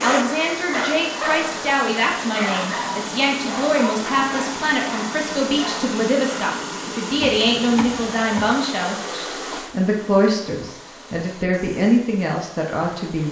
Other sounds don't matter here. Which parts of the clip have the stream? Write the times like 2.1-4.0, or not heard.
0.0-13.2.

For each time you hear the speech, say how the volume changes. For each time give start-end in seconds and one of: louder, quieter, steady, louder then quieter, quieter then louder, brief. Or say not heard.
0.0-13.2 steady.